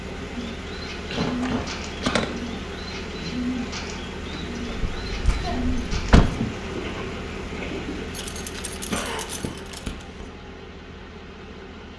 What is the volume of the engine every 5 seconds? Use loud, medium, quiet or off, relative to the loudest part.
loud, loud, medium.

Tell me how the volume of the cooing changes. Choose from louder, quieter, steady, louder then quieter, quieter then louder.
steady.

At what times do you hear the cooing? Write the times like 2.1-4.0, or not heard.
0.3-8.1.